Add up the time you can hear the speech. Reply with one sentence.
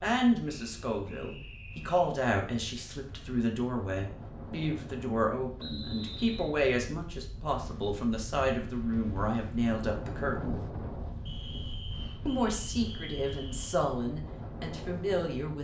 The speech can be heard for 14 seconds in total.